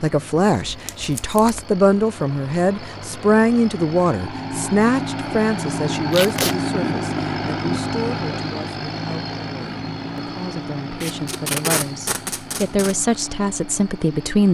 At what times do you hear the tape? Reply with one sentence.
The tape can be heard from 0.7 to 1.6 s, from 6.1 to 6.5 s and from 11.0 to 12.9 s.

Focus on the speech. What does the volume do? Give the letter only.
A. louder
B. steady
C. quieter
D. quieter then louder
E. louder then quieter
D.